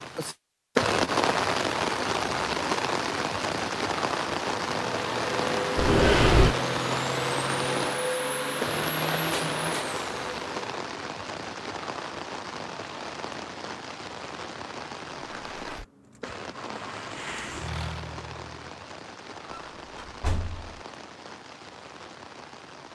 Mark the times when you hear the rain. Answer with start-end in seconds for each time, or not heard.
0.0-22.9.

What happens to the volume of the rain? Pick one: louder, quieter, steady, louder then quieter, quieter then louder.
quieter.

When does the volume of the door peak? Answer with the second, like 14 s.
6 s.